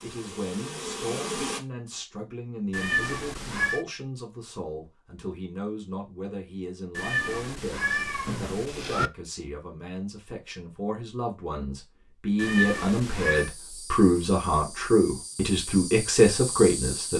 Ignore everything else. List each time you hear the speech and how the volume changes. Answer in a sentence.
The speech can be heard from 0.0 to 17.1 s, getting louder.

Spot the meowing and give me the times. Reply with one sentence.
The meowing can be heard from 2.7 to 3.9 s, from 7.0 to 9.1 s and from 12.3 to 13.5 s.